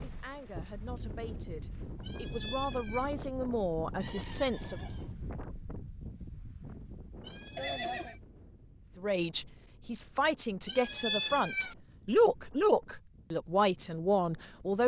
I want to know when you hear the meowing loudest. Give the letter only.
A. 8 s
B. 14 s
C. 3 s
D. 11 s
D.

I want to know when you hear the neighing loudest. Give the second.
8 s.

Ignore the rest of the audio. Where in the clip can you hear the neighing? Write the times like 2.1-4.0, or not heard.
4.0-5.2, 7.5-8.2.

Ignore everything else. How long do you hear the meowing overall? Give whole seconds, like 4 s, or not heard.
3 s.